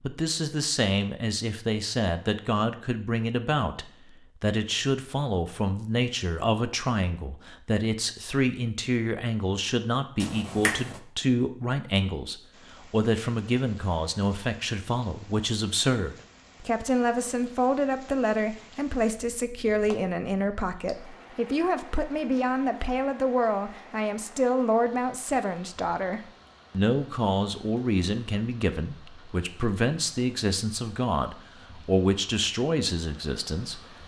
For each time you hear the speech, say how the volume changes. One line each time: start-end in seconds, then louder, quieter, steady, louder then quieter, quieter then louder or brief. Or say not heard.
0.0-34.0 steady.